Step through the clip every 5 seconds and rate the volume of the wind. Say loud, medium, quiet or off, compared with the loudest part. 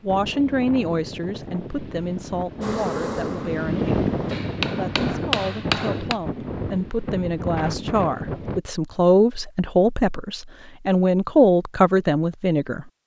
loud, loud, off.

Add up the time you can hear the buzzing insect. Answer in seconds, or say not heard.
2 s.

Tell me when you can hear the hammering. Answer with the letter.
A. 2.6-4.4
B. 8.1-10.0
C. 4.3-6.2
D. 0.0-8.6
C.